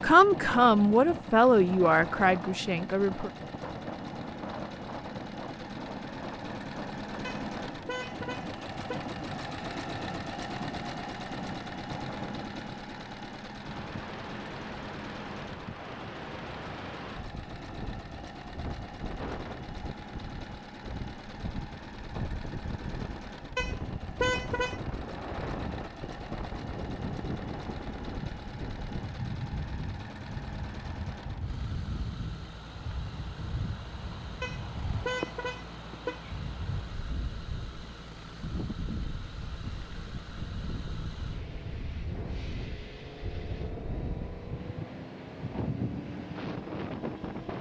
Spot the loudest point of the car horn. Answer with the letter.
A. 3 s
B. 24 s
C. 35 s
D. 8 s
B.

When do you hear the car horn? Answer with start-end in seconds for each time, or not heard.
7.2-9.2, 23.6-24.8, 34.4-36.2.